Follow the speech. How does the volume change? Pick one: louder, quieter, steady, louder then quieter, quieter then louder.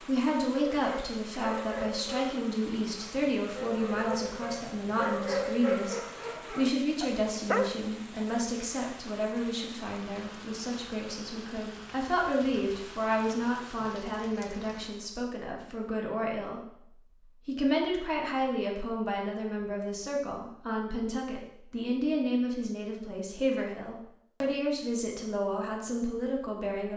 steady.